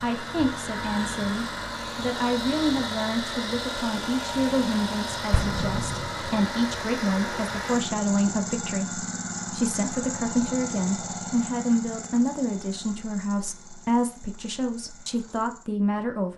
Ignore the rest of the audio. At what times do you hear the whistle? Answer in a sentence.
The whistle can't be heard in this clip.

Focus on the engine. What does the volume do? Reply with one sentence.
The volume of the engine goes down.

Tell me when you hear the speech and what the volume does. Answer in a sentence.
The speech can be heard from 0.0 to 16.3 s, at a steady volume.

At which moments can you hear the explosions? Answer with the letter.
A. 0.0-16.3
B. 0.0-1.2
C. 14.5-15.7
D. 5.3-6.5
D.